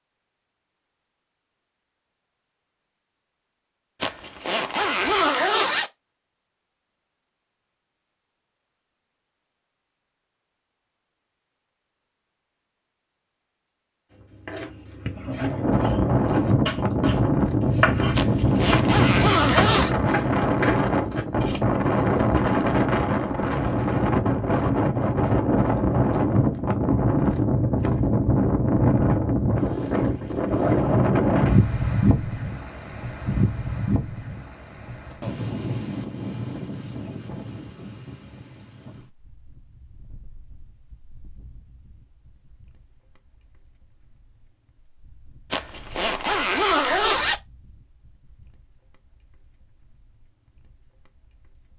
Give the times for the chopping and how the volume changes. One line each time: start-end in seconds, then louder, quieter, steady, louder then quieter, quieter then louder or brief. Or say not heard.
14.1-21.6 louder then quieter.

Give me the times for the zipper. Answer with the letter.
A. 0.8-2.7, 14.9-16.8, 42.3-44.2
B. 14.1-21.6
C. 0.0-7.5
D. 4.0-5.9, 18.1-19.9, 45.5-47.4
D.